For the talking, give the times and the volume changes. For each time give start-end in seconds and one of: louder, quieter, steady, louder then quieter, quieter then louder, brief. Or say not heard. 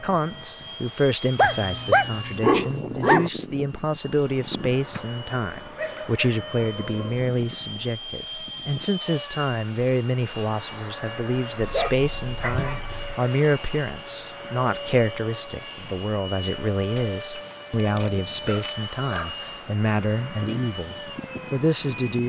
0.0-22.2 steady.